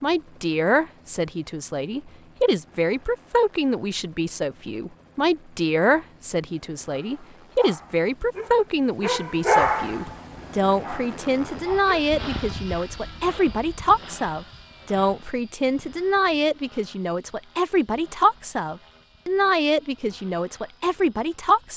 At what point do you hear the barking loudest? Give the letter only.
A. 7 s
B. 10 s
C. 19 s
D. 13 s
B.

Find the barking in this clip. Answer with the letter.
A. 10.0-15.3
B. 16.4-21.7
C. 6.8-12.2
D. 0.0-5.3
C.